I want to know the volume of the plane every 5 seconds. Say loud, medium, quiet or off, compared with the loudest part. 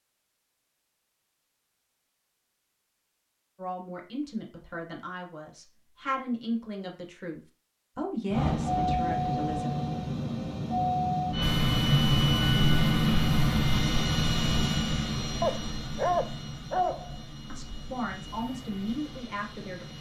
off, loud, loud, quiet.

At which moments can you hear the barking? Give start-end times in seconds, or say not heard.
15.4-17.1.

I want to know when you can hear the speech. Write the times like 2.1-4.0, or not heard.
3.5-9.8, 17.5-19.9.